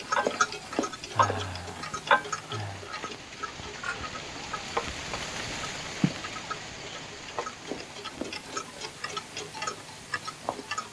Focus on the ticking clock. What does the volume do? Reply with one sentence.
The loudness of the ticking clock goes down.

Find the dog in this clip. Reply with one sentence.
You can't hear the dog here.